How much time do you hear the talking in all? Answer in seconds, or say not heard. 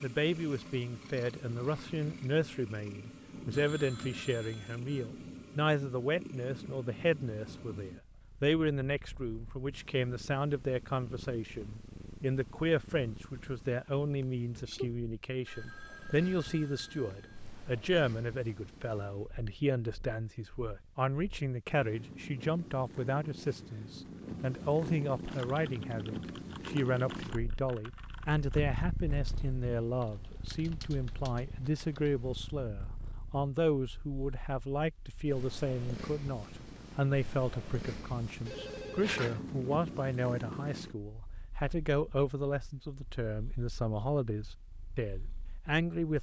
46 s.